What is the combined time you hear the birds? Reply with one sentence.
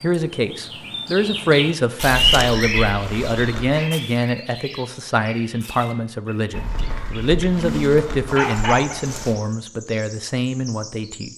The birds can be heard for 11 seconds in total.